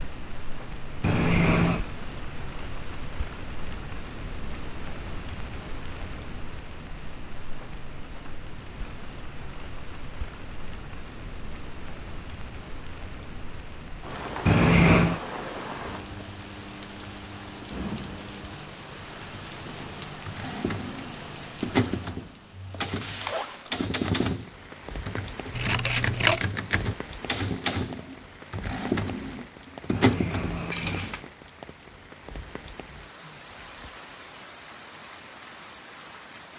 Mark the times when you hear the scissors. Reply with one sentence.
The scissors can be heard from 25.5 to 26.5 s.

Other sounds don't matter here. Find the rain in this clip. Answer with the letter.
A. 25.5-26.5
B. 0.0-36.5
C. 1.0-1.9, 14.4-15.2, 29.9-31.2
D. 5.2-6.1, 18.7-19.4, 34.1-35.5
B.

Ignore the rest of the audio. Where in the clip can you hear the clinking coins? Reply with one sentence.
You can hear the clinking coins from 1.0 to 1.9 s, from 14.4 to 15.2 s and from 29.9 to 31.2 s.